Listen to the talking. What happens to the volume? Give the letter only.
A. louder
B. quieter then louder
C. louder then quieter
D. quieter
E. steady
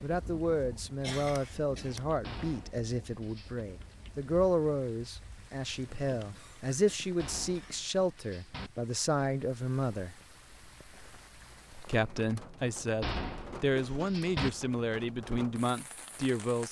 E.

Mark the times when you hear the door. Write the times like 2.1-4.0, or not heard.
2.2-3.6, 7.2-8.7, 13.0-14.5.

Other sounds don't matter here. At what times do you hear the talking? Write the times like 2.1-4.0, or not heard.
0.0-10.2, 11.7-16.6.